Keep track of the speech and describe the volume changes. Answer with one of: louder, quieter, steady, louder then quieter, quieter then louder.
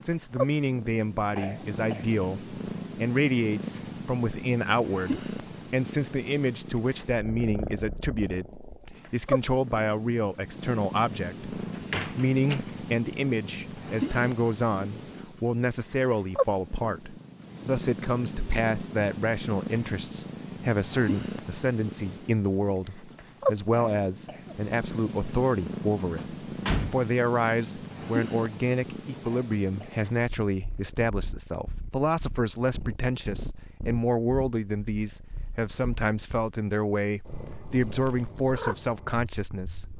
steady.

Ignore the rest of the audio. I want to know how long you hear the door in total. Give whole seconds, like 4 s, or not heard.
2 s.